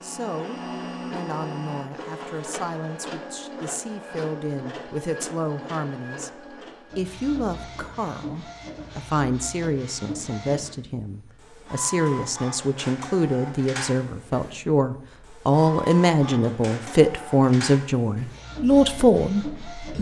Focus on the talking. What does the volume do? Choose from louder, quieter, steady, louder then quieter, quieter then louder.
louder.